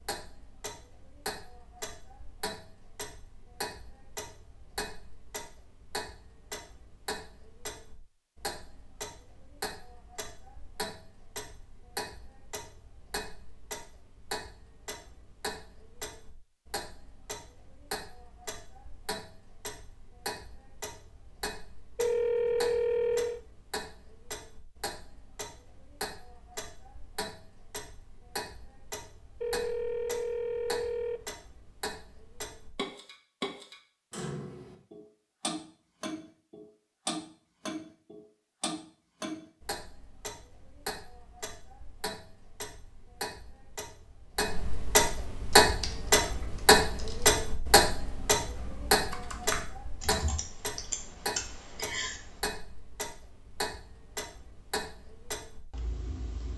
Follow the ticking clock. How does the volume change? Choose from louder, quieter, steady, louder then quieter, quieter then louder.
louder.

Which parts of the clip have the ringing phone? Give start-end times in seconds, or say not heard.
21.9-23.4, 29.4-31.2.